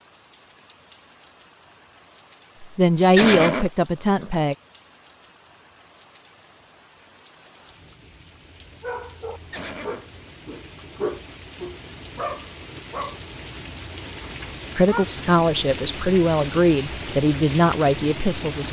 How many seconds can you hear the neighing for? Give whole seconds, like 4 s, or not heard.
2 s.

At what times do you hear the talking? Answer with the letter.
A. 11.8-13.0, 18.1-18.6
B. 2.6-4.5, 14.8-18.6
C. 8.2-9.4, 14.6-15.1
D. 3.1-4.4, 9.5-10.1
B.